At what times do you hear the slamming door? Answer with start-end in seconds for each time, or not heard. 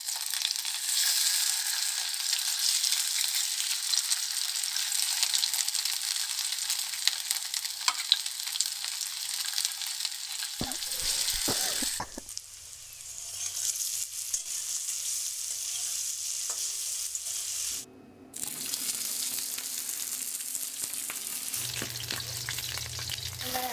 not heard.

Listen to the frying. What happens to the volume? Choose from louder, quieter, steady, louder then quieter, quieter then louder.
quieter.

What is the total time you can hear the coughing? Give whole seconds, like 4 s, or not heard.
2 s.